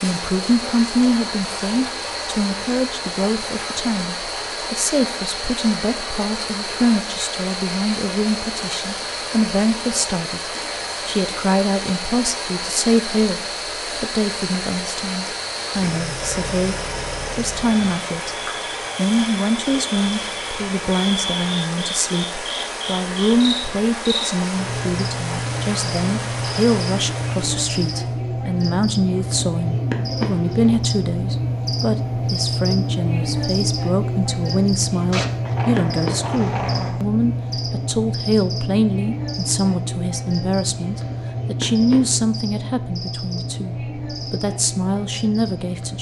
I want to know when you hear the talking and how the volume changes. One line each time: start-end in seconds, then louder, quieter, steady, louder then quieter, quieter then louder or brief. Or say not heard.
0.0-45.9 steady.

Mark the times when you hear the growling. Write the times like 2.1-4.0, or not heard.
16.1-17.7, 35.1-37.0.